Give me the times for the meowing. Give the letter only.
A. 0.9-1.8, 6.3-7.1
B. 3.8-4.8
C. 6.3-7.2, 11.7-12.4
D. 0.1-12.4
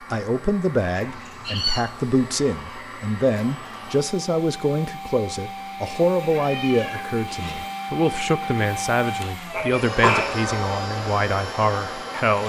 A.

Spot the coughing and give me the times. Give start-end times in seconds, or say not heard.
9.5-10.5.